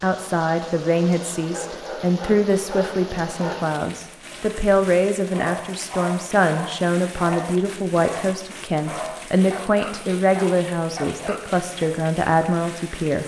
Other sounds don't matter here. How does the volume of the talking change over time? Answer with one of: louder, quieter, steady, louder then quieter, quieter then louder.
steady.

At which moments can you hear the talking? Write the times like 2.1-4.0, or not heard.
0.0-13.2.